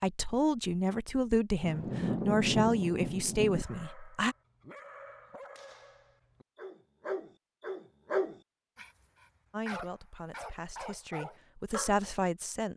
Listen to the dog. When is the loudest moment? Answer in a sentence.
The loudest moment of the dog is at 8 seconds.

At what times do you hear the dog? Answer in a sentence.
The dog can be heard from 3.5 to 12.0 s.